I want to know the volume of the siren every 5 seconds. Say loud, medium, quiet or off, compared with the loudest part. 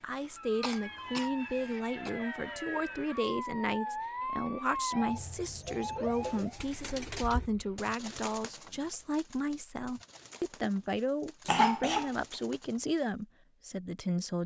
loud, loud, off.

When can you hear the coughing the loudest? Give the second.
12 s.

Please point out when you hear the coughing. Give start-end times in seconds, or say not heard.
0.6-2.1, 7.2-7.8, 11.4-12.1.